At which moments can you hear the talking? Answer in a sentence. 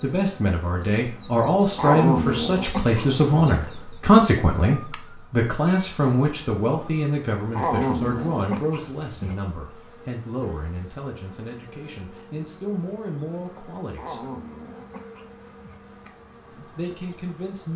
You can hear the talking from 0.0 to 14.2 s and from 16.6 to 17.7 s.